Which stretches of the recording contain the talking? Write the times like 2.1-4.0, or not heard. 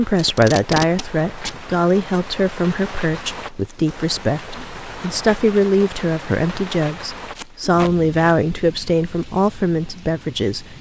0.0-10.7.